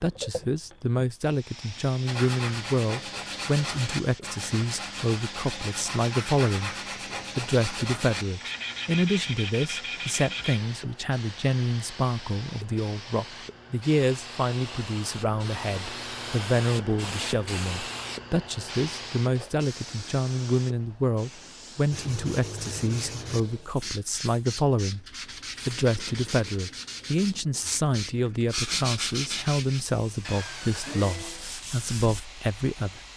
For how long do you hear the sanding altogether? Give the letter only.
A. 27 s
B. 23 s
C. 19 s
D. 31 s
C.